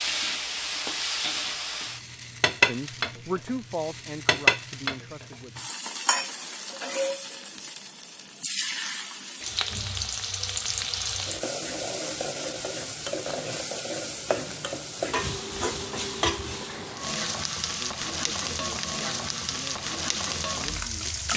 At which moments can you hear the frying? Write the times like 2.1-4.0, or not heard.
0.0-21.3.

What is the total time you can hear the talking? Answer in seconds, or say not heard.
6 s.